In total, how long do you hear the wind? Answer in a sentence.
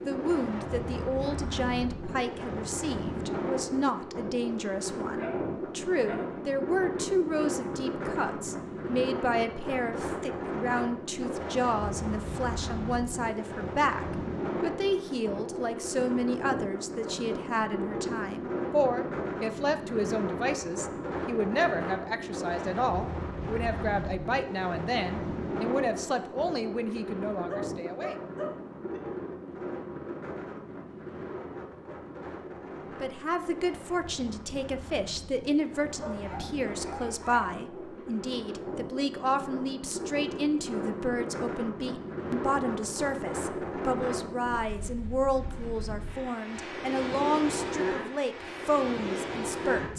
You can hear the wind for 50 seconds altogether.